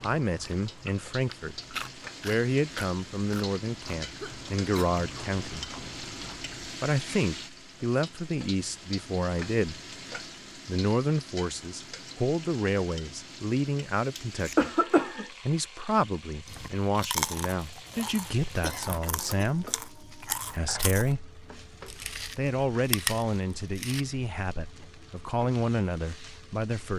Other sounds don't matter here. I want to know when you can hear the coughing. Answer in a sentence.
You can hear the coughing from 4.2 to 4.9 s, from 14.2 to 15.3 s and from 18.6 to 19.5 s.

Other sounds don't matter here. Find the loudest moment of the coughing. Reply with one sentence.
The volume of the coughing peaks at 15 seconds.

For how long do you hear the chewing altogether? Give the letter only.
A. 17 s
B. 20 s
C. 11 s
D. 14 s
D.